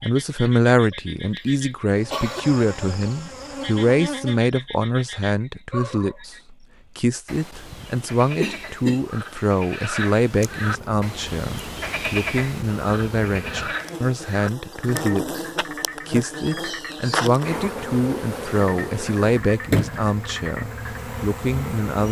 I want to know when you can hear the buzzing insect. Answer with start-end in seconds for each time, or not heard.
1.9-4.4, 10.3-22.0.